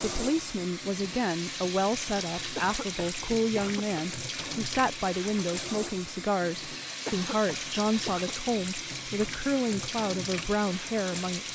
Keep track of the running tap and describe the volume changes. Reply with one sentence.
The volume of the running tap stays about the same.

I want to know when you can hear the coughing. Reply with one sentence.
You can hear the coughing from 2.5 to 4.0 s and from 7.0 to 8.3 s.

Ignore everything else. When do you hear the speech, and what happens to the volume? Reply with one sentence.
The speech can be heard from 0.0 to 11.4 s, at a steady volume.